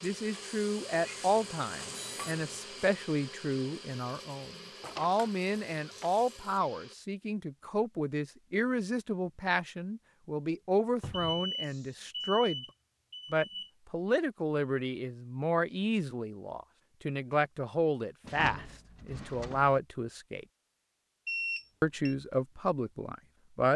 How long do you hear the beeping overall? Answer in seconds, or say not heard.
4 s.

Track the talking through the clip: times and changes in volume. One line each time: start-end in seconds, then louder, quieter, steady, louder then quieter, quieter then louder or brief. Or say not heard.
0.0-12.7 steady
13.3-20.4 steady
21.8-23.7 brief.